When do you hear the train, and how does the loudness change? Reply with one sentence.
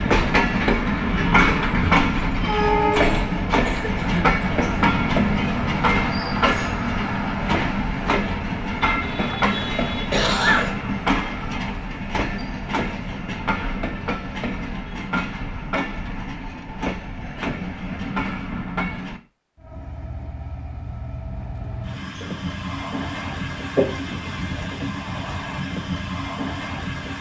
You can hear the train from 0.0 to 27.1 s, getting quieter.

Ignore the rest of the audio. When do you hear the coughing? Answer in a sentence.
The coughing can be heard from 2.9 to 4.8 s, from 9.4 to 10.9 s and from 23.8 to 24.3 s.